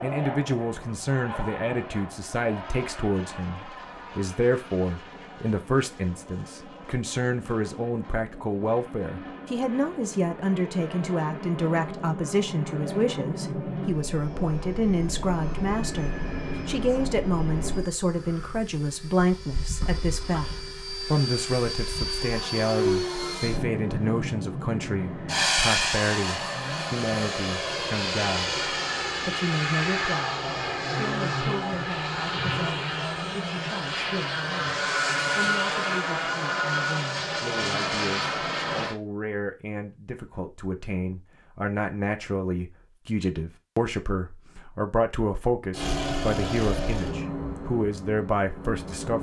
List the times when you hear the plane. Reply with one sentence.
The plane can be heard from 0.0 to 39.0 s and from 45.7 to 49.1 s.